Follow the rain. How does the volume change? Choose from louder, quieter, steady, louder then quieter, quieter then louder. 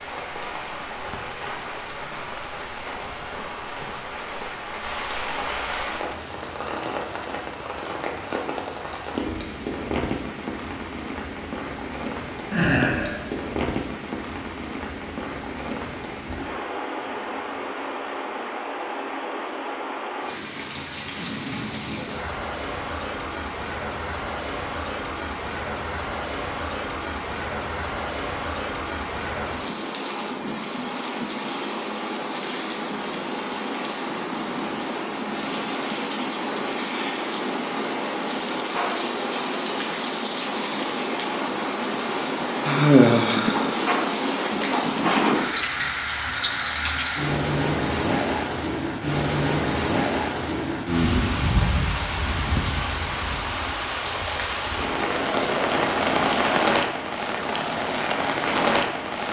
louder.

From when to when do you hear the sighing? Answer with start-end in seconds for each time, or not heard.
12.5-13.2, 42.6-43.8.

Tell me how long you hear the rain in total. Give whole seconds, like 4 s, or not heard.
59 s.